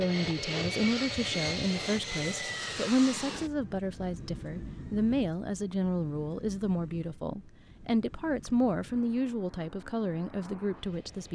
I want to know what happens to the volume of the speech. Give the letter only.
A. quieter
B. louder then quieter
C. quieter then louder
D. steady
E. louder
D.